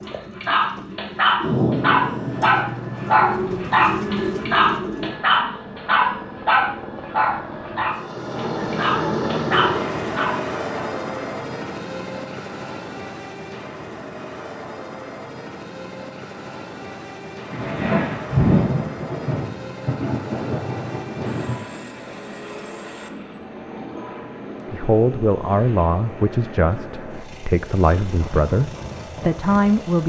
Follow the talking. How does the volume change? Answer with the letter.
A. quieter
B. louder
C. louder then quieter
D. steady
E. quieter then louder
E.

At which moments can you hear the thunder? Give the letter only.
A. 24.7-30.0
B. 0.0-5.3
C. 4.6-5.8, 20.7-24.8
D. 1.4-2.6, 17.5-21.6
D.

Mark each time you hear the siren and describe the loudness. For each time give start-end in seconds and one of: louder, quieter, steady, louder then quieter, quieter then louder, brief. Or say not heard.
not heard.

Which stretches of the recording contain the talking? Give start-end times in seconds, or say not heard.
24.7-30.0.